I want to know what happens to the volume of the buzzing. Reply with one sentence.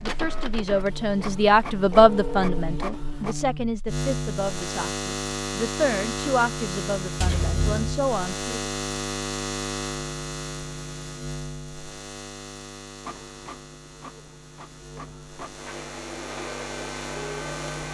The loudness of the buzzing goes up, then down.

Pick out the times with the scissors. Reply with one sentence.
The scissors can be heard from 7.2 to 7.9 s.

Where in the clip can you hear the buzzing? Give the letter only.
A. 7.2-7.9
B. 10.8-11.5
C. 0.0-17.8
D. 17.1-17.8
C.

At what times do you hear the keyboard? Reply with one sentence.
The keyboard can't be heard in this clip.